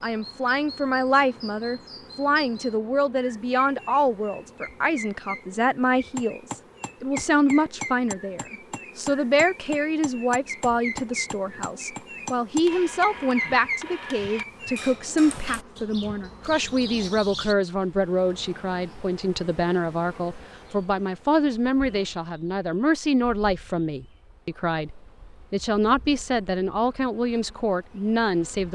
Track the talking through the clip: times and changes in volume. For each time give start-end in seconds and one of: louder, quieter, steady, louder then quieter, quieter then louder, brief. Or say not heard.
0.0-28.7 steady.